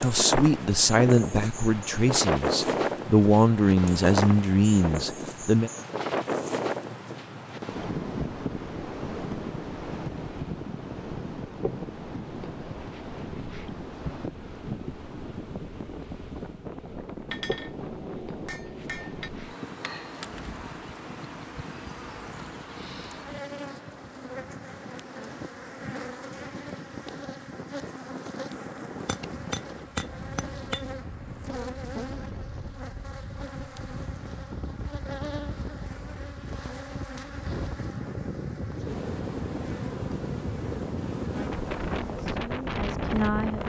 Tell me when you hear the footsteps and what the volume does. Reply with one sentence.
The footsteps can't be heard in this clip.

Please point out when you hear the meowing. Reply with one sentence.
The meowing can't be heard in this clip.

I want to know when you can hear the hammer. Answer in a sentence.
You can hear the hammer from 17.2 to 19.3 s and from 29.1 to 30.9 s.